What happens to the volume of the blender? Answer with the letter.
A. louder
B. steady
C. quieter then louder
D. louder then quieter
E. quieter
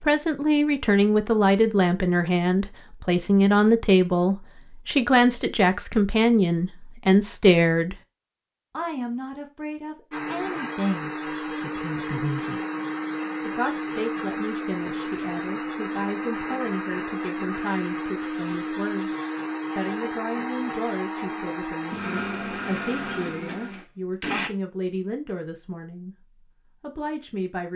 B.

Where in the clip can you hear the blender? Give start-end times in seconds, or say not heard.
10.1-24.5.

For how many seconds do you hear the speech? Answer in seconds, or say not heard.
25 s.